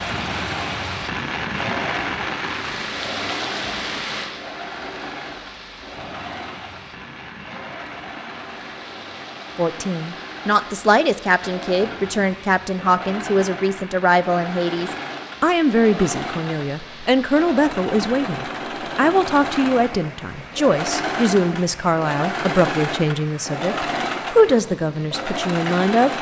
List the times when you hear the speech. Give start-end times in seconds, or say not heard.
9.6-26.1.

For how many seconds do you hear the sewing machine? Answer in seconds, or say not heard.
26 s.